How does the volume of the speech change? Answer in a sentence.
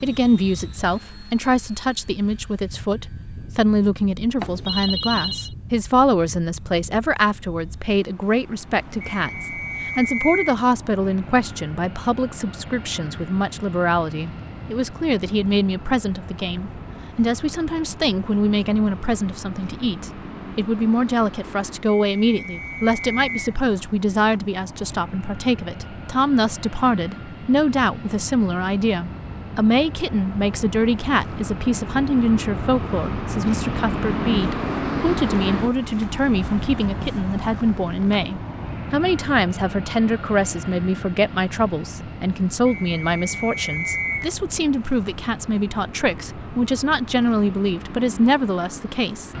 The volume of the speech stays about the same.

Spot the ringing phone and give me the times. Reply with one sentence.
The ringing phone can be heard from 4.3 to 5.5 s.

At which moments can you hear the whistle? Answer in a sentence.
You can hear the whistle from 9.0 to 10.6 s, from 22.1 to 23.4 s and from 42.6 to 44.3 s.